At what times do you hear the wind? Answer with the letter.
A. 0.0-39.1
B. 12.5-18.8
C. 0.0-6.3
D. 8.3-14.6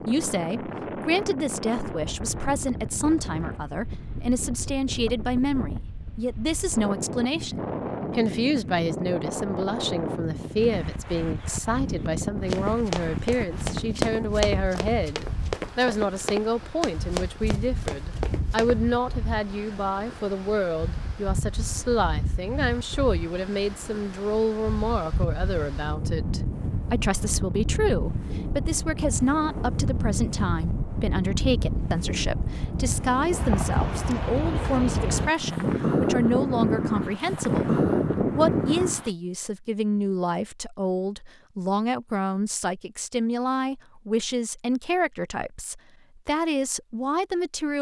A.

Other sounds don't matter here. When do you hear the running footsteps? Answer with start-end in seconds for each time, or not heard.
12.5-18.8.